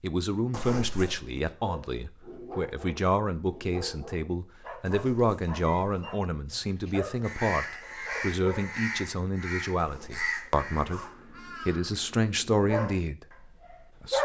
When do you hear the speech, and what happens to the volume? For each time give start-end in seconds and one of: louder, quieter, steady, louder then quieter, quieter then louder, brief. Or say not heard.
0.0-14.1 steady.